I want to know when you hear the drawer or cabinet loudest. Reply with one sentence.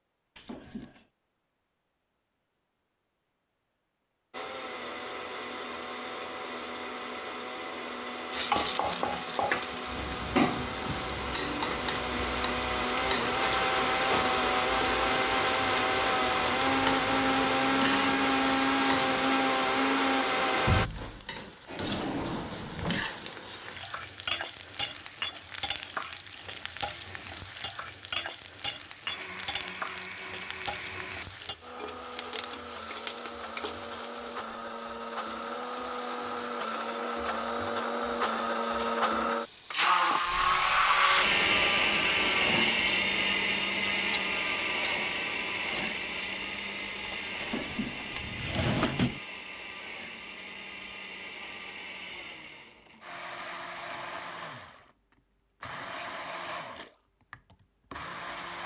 The volume of the drawer or cabinet peaks at 49 seconds.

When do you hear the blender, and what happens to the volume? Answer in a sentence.
You can hear the blender from 4.3 to 20.9 s, getting louder; and from 29.1 to 58.6 s, getting louder then quieter.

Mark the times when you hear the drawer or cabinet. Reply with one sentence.
The drawer or cabinet can be heard from 0.3 to 1.1 s, from 21.8 to 23.1 s and from 47.4 to 49.2 s.